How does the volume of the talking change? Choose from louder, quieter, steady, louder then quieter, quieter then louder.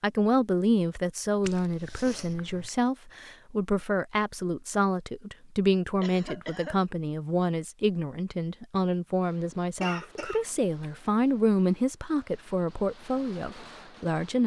steady.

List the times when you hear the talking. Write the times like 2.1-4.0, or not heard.
0.0-14.4.